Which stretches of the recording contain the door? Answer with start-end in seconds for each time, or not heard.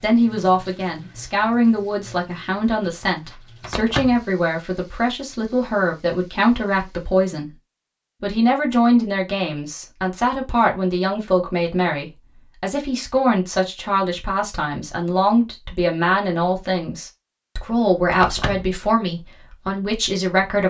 3.6-4.2, 18.1-18.7.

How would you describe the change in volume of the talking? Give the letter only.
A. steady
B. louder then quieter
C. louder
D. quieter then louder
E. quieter
A.